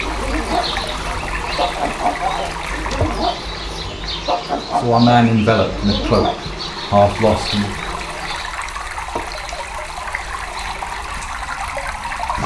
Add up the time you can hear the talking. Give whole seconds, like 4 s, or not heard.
3 s.